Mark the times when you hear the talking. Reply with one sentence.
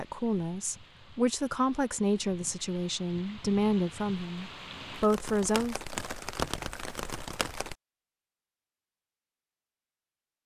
The talking can be heard from 0.0 to 5.8 s.